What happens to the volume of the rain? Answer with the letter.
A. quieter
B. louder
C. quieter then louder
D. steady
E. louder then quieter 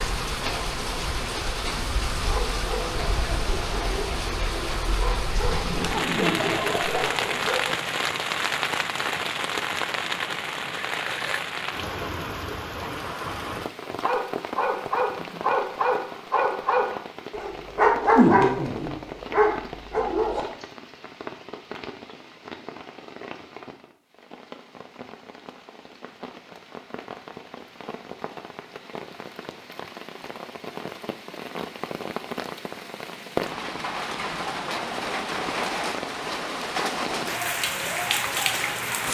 C.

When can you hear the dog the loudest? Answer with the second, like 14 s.
18 s.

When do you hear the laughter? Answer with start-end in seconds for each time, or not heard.
5.5-7.2.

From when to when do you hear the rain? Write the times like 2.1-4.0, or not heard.
0.0-39.0.